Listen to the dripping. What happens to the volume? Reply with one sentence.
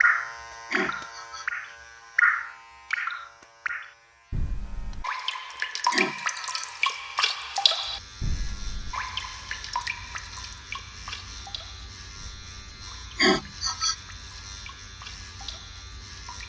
The loudness of the dripping goes down.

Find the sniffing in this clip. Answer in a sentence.
You can hear the sniffing from 0.7 to 1.5 s, from 5.9 to 6.7 s and from 13.2 to 13.9 s.